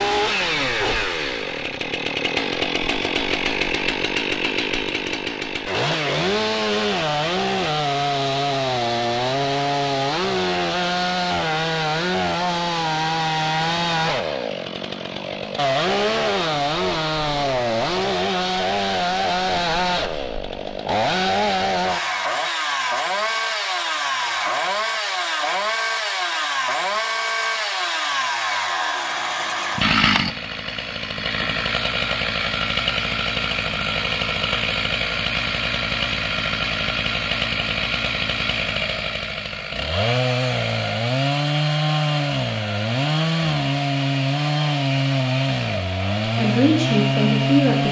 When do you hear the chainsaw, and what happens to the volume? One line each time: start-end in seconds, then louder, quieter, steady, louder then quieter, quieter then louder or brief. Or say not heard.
0.0-47.8 steady.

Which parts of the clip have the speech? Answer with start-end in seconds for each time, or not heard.
46.2-47.8.